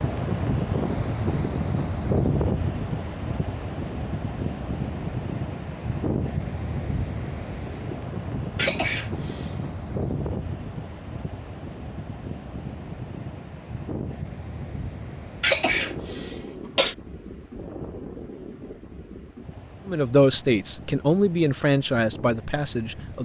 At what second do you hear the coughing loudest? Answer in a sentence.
The loudest moment of the coughing is at 16 seconds.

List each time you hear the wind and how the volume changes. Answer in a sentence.
The wind can be heard from 0.0 to 23.2 s, getting quieter.